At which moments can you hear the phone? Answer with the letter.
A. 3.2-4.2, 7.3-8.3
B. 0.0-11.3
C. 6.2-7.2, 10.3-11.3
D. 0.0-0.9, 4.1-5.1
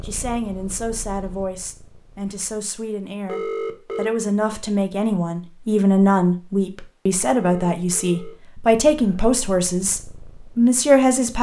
A.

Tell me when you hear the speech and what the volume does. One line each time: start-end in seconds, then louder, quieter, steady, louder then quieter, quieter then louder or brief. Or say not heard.
0.0-11.3 louder.